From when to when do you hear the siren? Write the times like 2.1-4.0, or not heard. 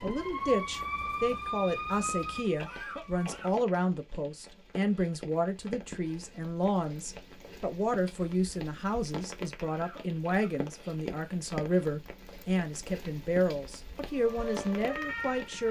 0.0-3.5, 14.1-15.6.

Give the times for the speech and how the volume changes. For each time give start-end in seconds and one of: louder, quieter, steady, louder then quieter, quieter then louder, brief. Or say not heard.
0.0-15.6 steady.